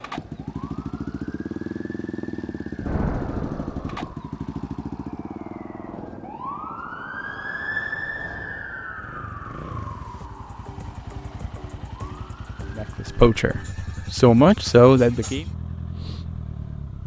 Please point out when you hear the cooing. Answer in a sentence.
You can't hear the cooing here.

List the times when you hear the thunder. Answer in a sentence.
The thunder can be heard from 2.8 to 4.2 s.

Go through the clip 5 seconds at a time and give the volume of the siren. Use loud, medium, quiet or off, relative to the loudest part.
quiet, loud, quiet, off.